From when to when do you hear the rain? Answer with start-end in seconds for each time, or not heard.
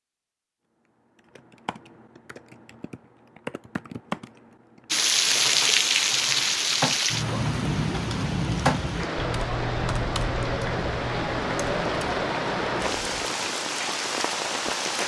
4.9-15.0.